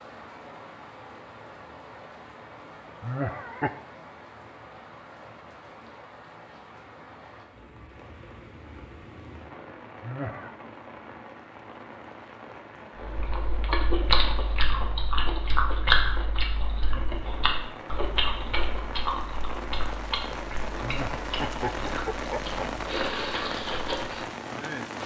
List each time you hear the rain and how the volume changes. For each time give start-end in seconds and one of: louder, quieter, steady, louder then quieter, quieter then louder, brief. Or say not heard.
0.0-25.0 louder.